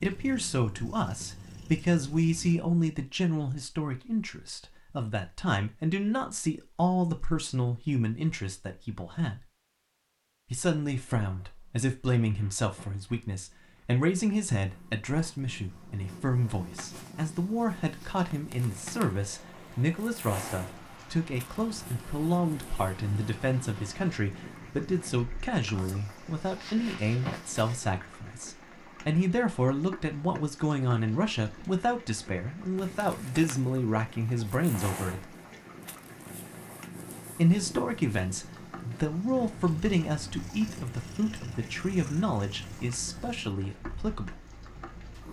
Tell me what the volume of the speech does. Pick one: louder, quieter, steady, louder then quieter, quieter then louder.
steady.